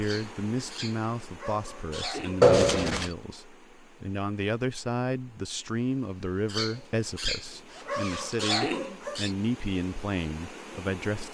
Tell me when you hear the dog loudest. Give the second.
9 s.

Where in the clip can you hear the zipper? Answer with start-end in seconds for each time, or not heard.
2.4-3.1, 6.6-8.4.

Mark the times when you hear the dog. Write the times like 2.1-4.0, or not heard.
0.0-2.5, 6.5-9.3.